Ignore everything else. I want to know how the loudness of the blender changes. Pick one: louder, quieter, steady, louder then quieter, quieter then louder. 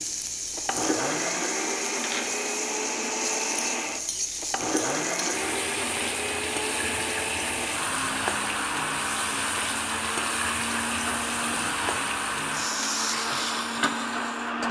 steady.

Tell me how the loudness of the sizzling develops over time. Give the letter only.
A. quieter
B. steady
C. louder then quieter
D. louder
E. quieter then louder
B.